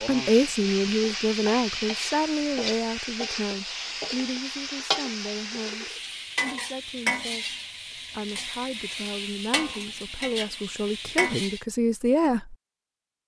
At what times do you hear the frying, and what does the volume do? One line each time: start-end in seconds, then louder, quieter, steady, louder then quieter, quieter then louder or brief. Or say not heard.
0.0-11.7 steady.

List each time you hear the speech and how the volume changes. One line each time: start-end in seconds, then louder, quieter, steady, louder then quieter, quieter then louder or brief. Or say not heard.
0.1-12.6 quieter then louder.